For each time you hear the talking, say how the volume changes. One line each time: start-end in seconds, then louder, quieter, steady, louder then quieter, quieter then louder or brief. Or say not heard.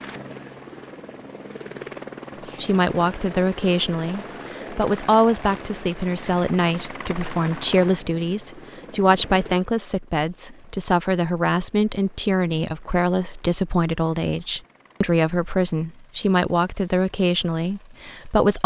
2.6-18.6 steady.